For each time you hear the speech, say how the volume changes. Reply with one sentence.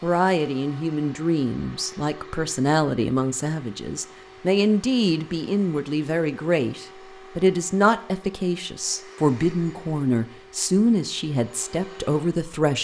The speech can be heard from 0.0 to 12.7 s, at a steady volume.